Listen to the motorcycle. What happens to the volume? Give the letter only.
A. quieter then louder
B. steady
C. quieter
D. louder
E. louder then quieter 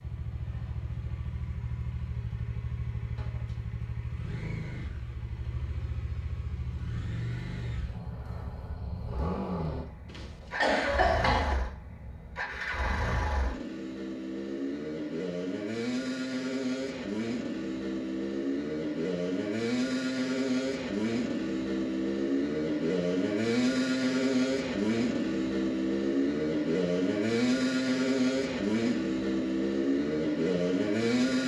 D.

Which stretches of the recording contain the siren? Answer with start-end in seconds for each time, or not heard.
not heard.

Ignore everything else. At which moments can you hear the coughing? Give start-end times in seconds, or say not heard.
10.1-11.6.